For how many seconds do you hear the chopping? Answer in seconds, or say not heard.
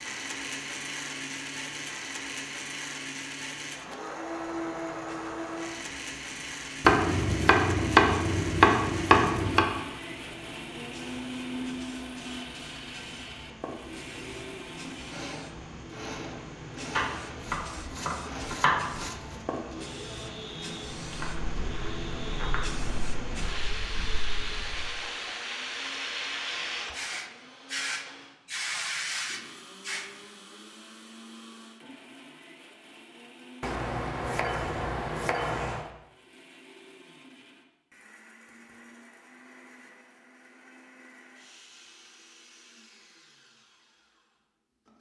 8 s.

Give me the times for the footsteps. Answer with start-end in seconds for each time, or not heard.
21.0-25.0.